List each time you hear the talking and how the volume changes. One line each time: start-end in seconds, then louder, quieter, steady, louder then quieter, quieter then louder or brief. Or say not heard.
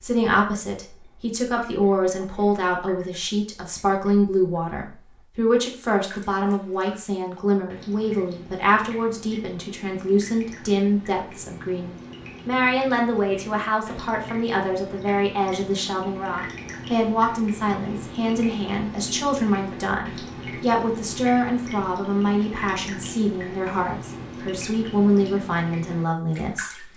0.0-26.9 steady.